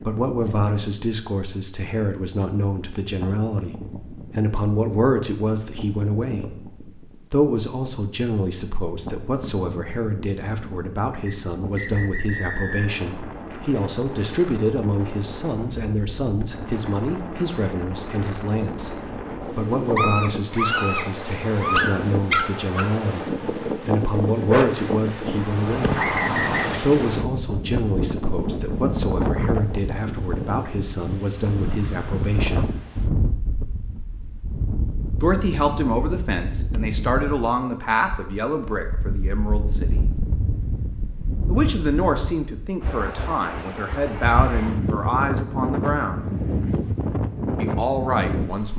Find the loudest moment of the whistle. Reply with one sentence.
The loudest moment of the whistle is at 26 seconds.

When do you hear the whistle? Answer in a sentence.
You can hear the whistle from 11.2 to 12.9 s and from 25.9 to 26.8 s.